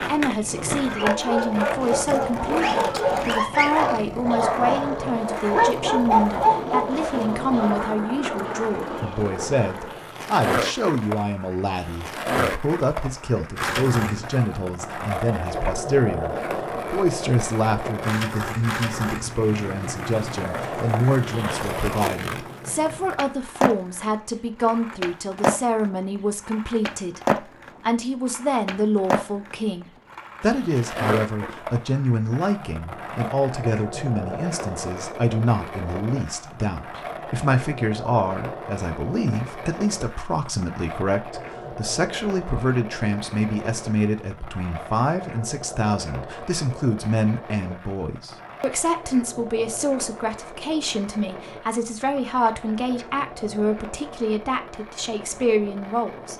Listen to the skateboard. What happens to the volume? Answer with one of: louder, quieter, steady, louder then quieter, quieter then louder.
quieter.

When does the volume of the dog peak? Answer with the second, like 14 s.
6 s.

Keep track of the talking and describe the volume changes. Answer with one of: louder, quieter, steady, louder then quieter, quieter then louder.
steady.